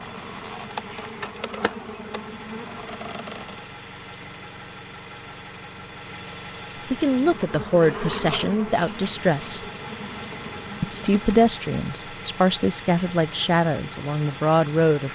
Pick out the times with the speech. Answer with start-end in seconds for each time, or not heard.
6.9-9.6, 10.8-15.1.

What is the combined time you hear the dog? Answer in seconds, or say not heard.
not heard.